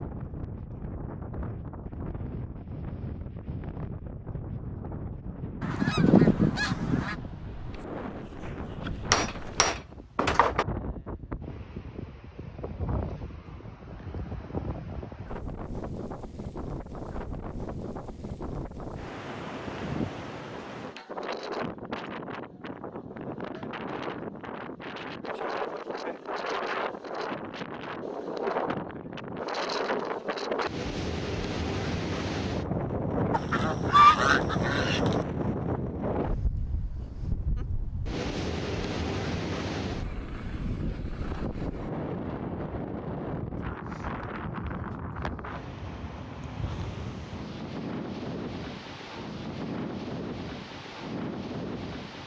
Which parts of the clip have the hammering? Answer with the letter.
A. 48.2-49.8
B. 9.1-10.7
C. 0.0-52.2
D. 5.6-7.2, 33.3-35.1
B.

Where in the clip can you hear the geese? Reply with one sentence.
The geese can be heard from 5.6 to 7.2 s and from 33.3 to 35.1 s.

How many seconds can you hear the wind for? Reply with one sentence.
The wind can be heard for 52 seconds in total.